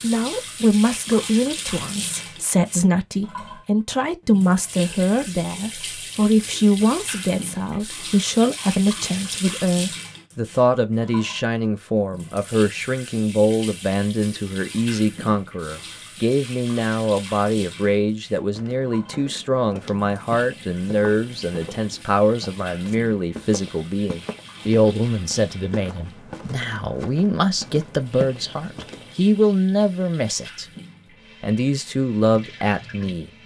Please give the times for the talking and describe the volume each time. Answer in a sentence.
You can hear the talking from 0.0 to 30.6 s, at a steady volume; and briefly from 31.4 to 33.3 s.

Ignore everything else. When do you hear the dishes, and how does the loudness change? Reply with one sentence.
You can't hear the dishes here.